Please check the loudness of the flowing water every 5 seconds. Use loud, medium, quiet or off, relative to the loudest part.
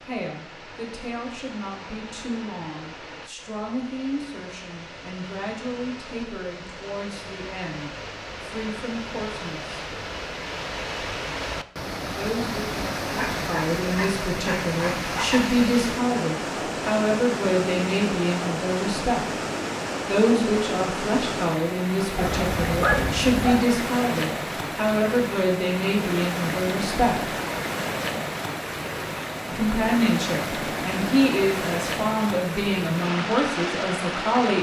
quiet, medium, loud, loud, loud, loud, loud.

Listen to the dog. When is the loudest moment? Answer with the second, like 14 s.
23 s.